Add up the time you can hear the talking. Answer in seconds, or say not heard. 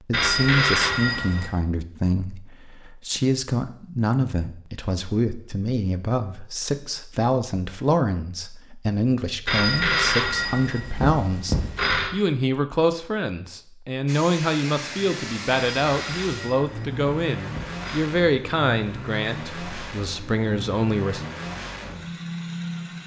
21 s.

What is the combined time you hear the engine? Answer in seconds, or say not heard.
9 s.